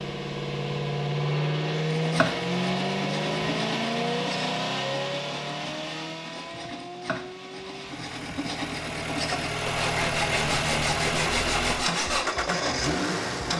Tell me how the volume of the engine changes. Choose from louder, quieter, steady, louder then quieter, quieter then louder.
quieter then louder.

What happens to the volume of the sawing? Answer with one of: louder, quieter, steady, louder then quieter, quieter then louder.
louder.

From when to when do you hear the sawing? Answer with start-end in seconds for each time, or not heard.
1.9-12.3.